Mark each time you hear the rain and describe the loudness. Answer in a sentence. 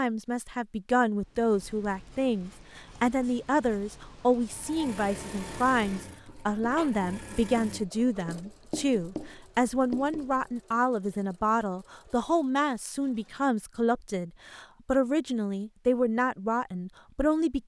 The rain can't be heard in this clip.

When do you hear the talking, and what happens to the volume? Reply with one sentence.
You can hear the talking from 0.0 to 17.6 s, at a steady volume.